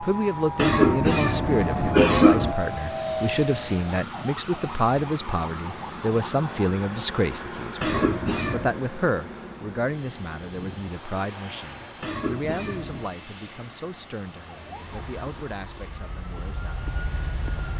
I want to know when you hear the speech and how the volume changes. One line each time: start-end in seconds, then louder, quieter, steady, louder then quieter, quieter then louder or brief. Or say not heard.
0.0-16.9 quieter.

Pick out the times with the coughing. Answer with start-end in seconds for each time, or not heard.
0.6-2.5, 7.8-8.8, 12.0-13.2.